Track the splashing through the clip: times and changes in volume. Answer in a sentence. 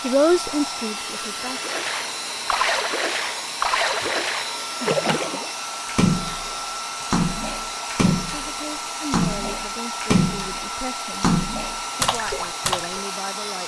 The splashing can be heard from 1.4 to 13.0 s, at a steady volume.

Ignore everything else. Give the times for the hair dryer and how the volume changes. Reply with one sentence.
You can hear the hair dryer from 0.0 to 13.6 s, at a steady volume.